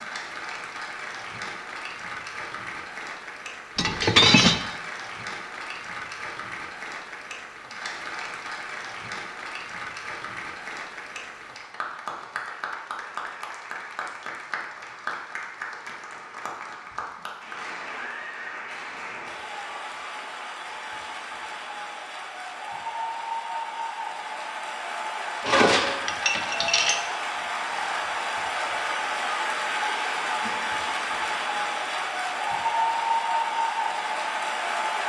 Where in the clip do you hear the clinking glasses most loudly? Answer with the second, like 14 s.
4 s.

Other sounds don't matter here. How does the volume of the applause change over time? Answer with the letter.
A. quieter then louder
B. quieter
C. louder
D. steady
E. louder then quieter
C.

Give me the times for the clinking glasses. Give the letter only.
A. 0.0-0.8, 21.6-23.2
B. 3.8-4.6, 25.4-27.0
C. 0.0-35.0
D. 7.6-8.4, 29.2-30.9
B.